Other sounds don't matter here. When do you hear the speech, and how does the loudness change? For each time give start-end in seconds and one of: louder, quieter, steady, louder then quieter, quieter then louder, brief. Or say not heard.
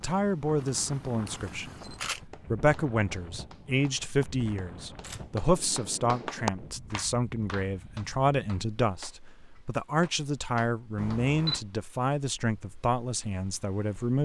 0.0-14.1 steady.